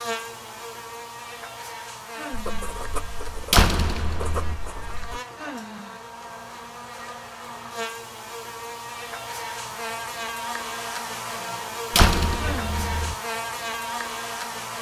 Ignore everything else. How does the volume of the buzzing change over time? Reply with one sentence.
The loudness of the buzzing goes up.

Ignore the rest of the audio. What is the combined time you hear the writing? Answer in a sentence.
The writing can be heard for 3 seconds in total.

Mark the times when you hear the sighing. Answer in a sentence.
You can hear the sighing from 2.1 to 2.8 s, from 5.3 to 6.0 s and from 12.3 to 12.8 s.